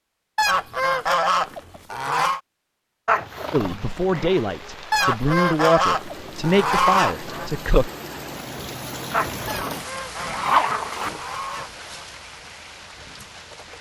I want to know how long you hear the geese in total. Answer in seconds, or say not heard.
7 s.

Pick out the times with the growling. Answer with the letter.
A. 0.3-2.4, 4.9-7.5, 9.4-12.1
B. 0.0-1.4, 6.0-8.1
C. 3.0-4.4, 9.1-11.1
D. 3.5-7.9
C.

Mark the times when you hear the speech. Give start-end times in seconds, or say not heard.
3.5-7.9.